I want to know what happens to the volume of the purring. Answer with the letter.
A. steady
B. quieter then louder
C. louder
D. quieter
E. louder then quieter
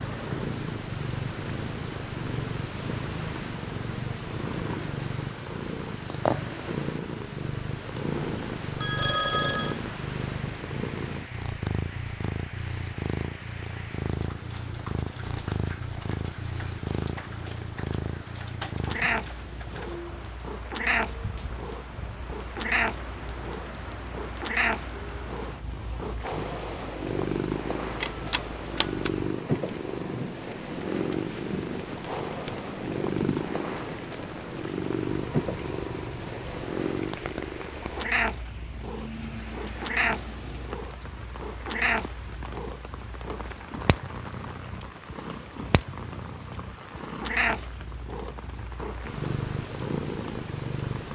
A.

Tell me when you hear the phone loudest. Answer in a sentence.
The volume of the phone peaks at 9 seconds.